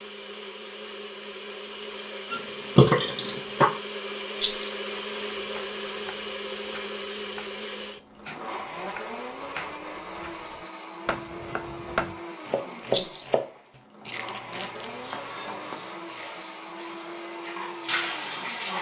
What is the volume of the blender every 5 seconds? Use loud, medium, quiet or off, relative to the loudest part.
loud, loud, medium, medium.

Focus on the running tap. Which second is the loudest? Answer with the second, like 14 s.
18 s.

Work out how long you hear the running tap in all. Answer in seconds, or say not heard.
4 s.